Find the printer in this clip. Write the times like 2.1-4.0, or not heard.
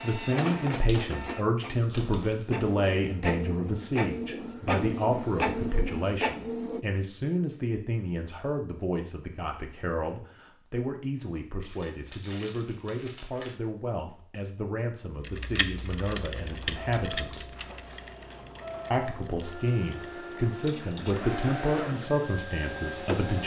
0.0-6.8, 16.2-23.4.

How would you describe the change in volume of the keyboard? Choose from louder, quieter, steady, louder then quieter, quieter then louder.
quieter.